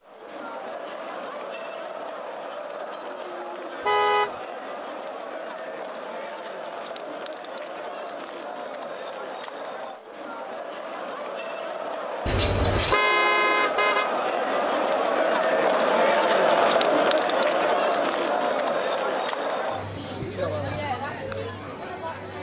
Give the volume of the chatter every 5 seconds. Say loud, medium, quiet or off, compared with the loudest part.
quiet, quiet, medium, loud, medium.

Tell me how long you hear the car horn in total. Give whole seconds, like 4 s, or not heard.
2 s.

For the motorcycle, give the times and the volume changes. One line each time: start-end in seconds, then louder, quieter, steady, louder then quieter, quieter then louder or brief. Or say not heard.
not heard.